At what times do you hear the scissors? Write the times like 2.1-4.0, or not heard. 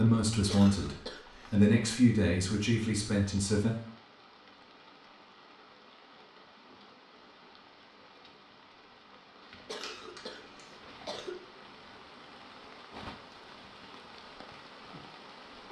9.8-10.7.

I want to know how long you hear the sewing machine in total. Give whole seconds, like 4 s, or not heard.
not heard.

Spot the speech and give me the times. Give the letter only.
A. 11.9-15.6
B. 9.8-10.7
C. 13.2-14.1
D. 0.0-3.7
D.